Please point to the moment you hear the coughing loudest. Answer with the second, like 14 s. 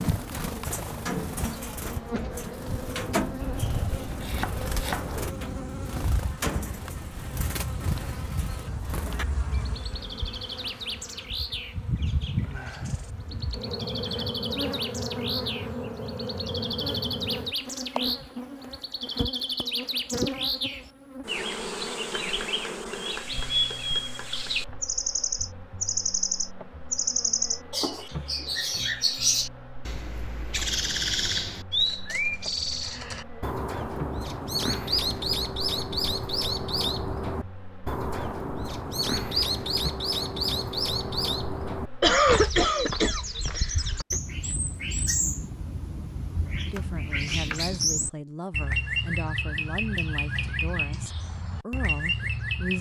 42 s.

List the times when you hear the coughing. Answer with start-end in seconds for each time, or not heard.
42.0-44.1.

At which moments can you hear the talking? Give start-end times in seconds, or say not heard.
46.6-52.7.